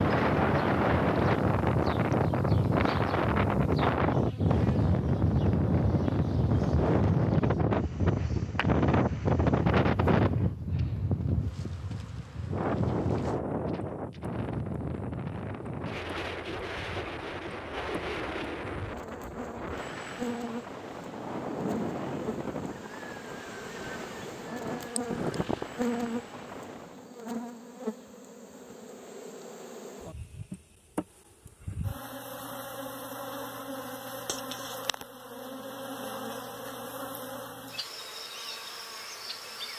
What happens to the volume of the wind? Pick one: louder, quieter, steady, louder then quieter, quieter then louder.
quieter.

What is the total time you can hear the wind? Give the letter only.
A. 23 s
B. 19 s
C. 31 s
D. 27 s
D.